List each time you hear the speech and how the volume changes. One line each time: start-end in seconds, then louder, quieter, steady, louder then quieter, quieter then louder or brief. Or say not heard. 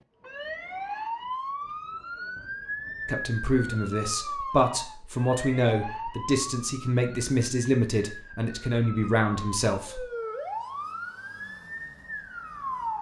3.0-10.1 steady.